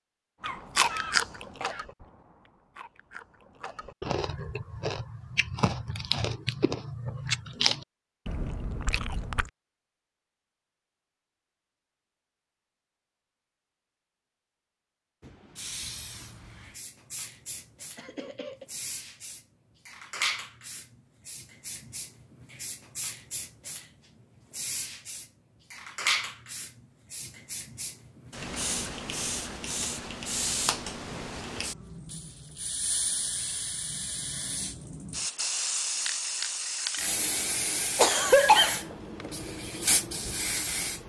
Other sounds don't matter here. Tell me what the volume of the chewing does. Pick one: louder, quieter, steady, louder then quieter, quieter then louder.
quieter then louder.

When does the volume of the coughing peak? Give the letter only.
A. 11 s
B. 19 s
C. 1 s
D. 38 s
D.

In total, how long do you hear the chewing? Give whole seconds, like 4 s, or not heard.
9 s.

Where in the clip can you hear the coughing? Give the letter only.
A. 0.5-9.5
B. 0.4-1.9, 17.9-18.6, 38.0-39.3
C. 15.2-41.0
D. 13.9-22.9
B.